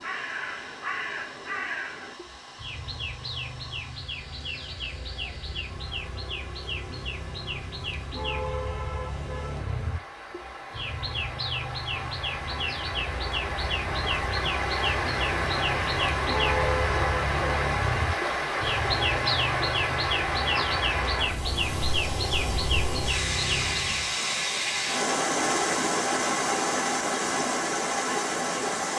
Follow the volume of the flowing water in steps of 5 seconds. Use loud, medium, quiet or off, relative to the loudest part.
quiet, quiet, medium, loud, loud, loud.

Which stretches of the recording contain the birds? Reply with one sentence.
The birds can be heard from 0.0 to 24.1 s.